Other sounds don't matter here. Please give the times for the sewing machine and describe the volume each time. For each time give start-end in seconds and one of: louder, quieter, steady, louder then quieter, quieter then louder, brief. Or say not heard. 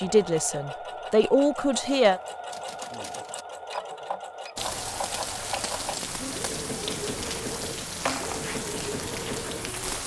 0.0-9.8 steady.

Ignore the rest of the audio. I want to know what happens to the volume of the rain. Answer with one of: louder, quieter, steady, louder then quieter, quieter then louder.
steady.